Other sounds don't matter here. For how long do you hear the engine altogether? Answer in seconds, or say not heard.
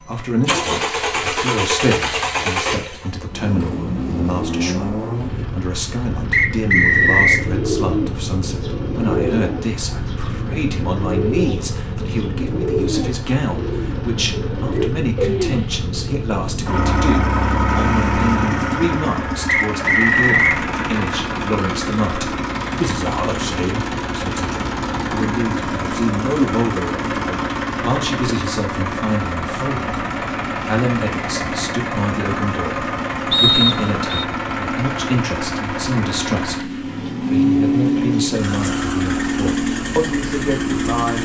41 s.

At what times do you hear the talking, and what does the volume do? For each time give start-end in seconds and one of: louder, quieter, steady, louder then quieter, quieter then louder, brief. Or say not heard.
0.0-41.1 steady.